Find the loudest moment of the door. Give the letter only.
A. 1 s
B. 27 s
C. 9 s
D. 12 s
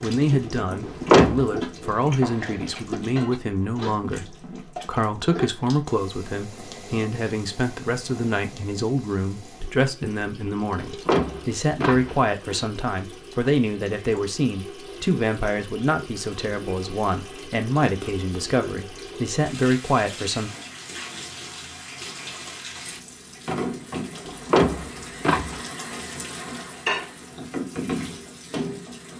A.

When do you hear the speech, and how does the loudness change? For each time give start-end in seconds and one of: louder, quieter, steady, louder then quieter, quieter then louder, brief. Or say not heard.
0.0-20.5 steady.